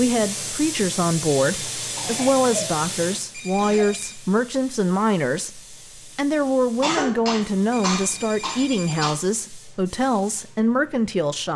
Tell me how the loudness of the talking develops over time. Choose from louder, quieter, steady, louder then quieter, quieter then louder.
steady.